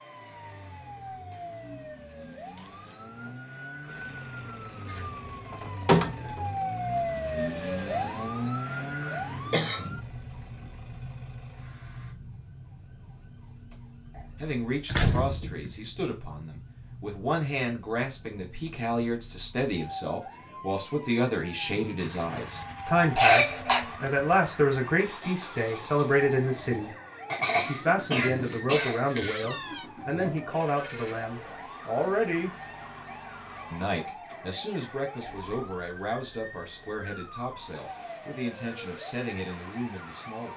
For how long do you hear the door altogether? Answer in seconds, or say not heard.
3 s.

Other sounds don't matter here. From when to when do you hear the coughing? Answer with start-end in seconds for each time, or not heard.
9.1-10.0, 23.1-23.8, 27.3-29.1.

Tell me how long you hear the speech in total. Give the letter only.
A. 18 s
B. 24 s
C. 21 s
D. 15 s
B.